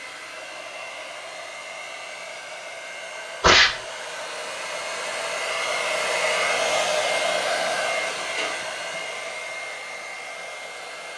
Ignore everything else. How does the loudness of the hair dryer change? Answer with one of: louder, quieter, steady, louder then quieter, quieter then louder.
louder then quieter.